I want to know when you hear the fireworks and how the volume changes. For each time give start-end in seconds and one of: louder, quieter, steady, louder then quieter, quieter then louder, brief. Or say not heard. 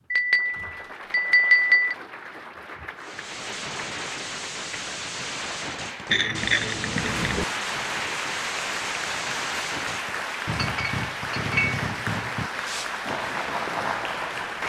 3.0-14.6 steady.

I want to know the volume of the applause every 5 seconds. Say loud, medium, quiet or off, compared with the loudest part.
medium, loud, loud.